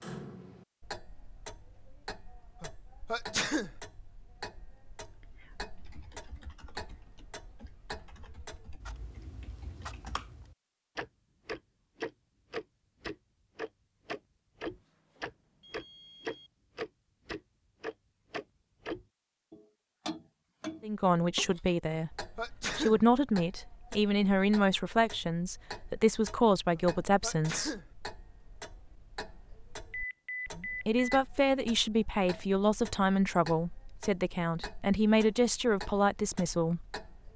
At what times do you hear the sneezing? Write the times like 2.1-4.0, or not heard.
2.6-3.7, 21.9-23.0, 26.8-27.9.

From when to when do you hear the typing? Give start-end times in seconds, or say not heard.
5.0-10.3.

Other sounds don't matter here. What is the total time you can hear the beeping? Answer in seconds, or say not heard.
3 s.